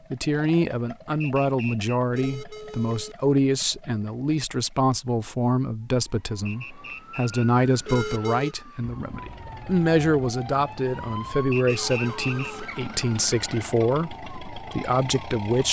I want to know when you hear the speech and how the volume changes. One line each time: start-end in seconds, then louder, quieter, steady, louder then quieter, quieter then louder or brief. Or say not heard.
0.1-15.6 steady.